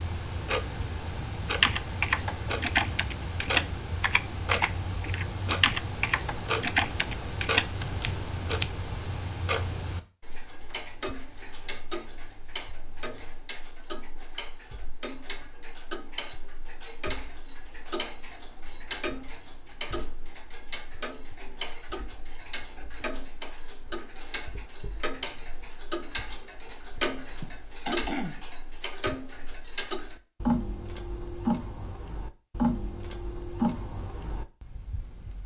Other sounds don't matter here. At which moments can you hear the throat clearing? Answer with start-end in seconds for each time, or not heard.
27.4-28.4.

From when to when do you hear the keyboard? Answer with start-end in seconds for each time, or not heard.
1.6-8.7.